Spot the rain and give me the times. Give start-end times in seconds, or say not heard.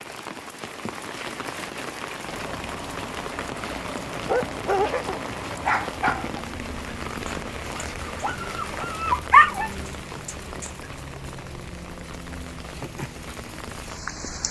0.0-14.4.